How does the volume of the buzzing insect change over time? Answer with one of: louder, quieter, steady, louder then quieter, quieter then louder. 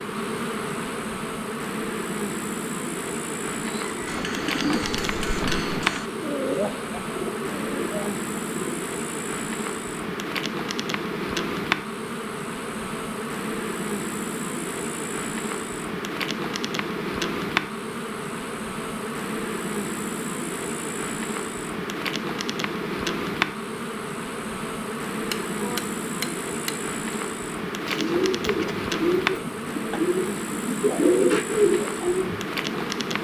steady.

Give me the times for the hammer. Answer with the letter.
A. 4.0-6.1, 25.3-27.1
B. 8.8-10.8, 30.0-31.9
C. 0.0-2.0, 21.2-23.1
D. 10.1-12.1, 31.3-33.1
A.